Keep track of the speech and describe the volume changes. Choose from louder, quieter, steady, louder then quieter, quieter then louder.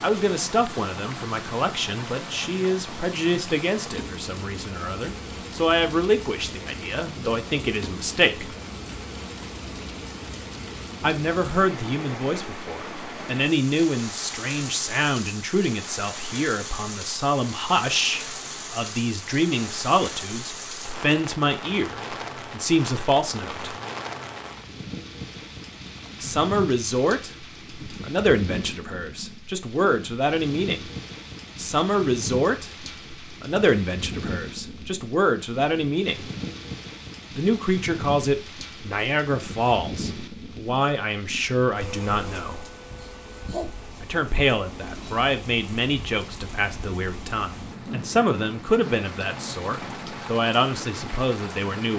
steady.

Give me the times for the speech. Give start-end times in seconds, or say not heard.
0.0-8.6, 11.0-23.8, 26.2-30.9, 31.6-36.2, 37.4-42.6, 44.0-51.9.